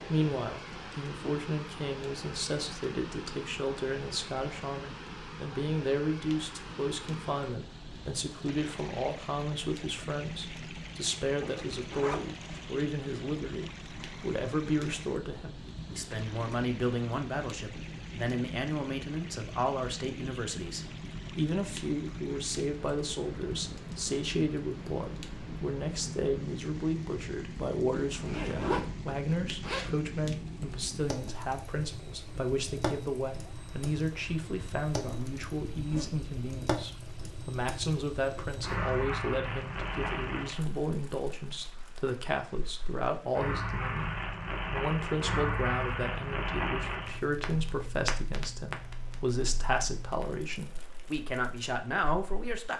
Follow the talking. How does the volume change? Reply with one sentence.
The loudness of the talking stays about the same.